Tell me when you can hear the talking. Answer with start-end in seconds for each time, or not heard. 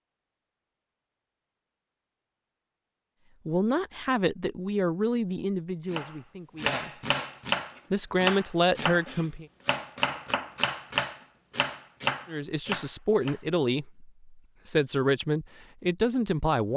3.5-7.0, 7.9-9.4, 12.2-16.7.